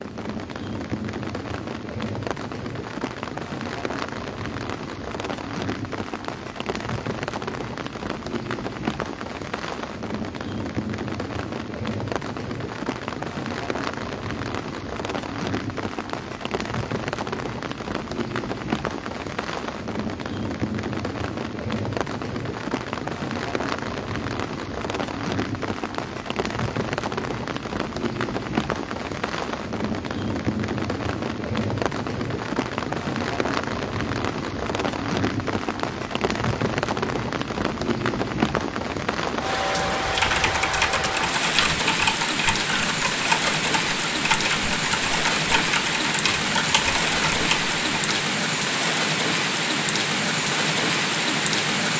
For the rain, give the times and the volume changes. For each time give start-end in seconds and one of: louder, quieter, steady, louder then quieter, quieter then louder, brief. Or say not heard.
0.0-51.9 louder.